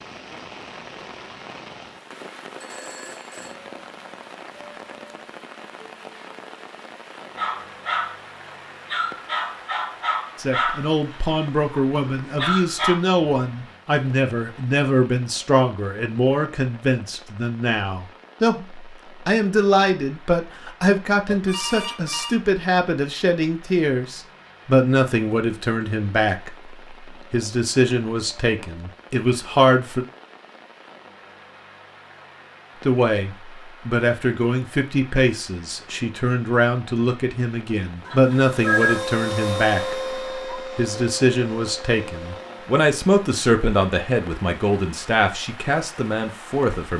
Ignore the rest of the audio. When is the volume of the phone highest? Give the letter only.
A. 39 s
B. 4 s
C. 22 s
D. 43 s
A.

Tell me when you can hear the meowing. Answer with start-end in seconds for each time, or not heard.
not heard.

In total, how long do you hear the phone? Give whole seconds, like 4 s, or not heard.
3 s.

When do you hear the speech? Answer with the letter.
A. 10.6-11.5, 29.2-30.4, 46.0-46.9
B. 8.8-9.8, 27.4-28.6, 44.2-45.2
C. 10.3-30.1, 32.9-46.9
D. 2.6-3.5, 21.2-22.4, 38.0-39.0
C.